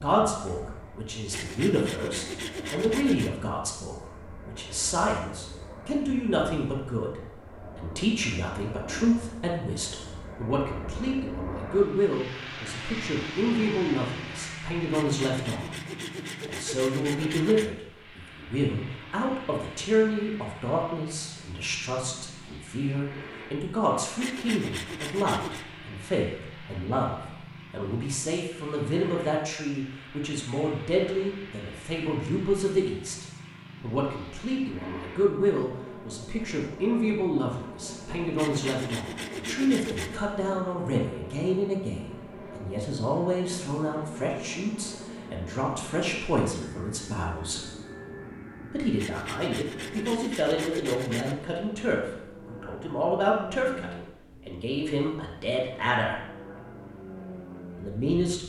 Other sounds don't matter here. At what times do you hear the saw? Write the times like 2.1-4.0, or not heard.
1.3-3.3, 14.9-17.7, 24.2-25.6, 38.4-40.2, 49.0-51.4.